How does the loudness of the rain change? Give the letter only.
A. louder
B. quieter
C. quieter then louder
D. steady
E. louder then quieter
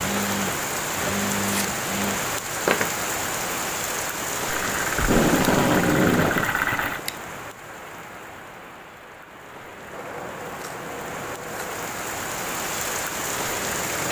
C.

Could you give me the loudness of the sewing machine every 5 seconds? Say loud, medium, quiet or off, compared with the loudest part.
loud, loud, off.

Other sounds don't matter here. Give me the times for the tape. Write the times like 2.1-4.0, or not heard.
5.0-6.5.